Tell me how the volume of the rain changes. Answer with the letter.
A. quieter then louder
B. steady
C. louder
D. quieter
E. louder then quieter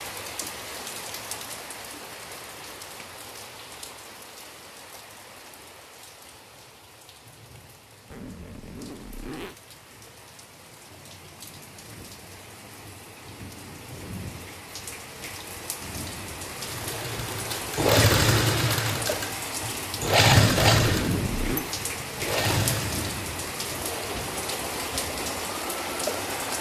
A.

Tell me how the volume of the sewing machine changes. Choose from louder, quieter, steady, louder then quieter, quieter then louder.
quieter.